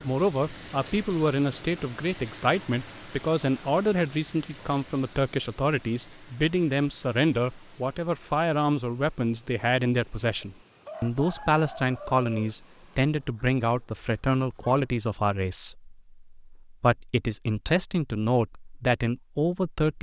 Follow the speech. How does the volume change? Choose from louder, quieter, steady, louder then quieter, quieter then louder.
steady.